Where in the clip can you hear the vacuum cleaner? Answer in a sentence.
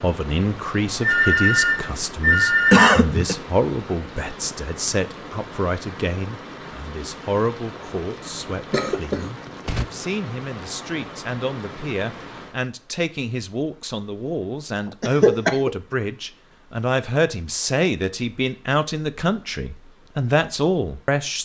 You can't hear the vacuum cleaner here.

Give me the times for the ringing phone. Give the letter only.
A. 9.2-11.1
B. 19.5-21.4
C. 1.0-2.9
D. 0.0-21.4
C.